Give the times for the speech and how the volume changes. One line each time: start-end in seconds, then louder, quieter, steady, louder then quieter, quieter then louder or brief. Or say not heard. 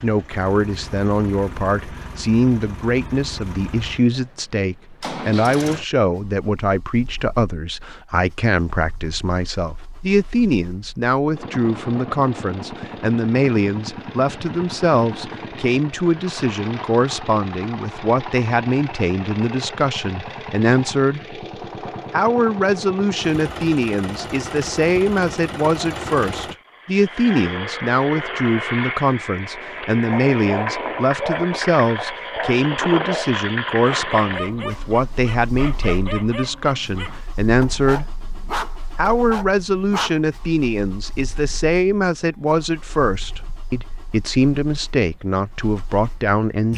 0.0-21.4 steady
22.1-38.2 steady
39.0-46.7 steady.